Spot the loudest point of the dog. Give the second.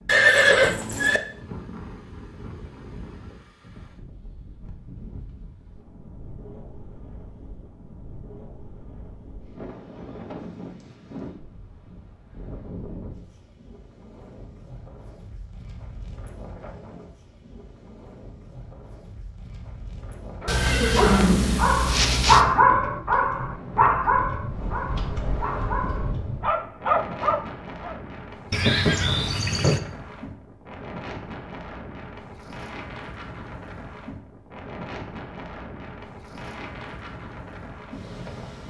22 s.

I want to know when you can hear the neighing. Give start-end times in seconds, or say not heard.
0.1-1.2, 20.4-22.4, 28.5-29.8.